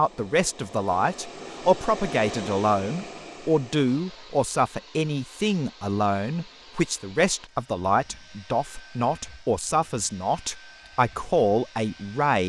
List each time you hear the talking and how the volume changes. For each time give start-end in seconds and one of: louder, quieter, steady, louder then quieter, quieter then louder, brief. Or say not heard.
0.0-12.4 steady.